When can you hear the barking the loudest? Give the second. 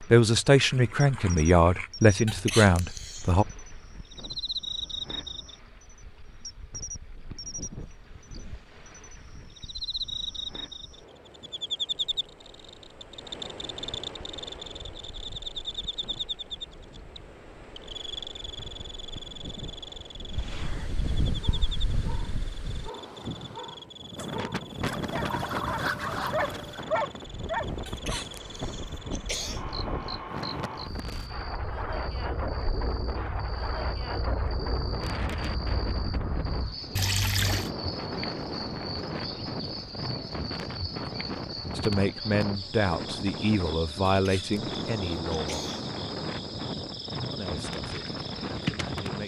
27 s.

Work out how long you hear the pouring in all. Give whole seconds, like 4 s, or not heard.
4 s.